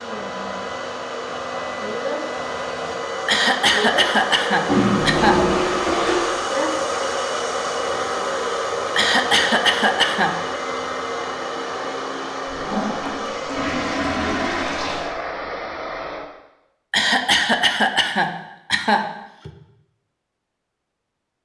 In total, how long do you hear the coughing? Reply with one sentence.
You can hear the coughing for 6 seconds altogether.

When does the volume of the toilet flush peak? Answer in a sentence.
The loudest moment of the toilet flush is at 5 seconds.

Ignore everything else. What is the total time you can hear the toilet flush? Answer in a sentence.
The toilet flush can be heard for 4 seconds in total.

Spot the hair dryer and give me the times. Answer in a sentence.
The hair dryer can be heard from 0.0 to 16.2 s.